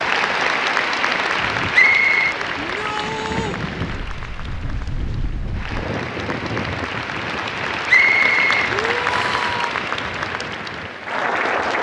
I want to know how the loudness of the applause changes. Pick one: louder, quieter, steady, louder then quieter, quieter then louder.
quieter then louder.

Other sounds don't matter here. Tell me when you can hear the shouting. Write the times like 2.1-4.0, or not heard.
2.5-3.6, 8.7-9.8.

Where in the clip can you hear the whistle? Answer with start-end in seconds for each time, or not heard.
1.7-2.4, 7.8-9.4.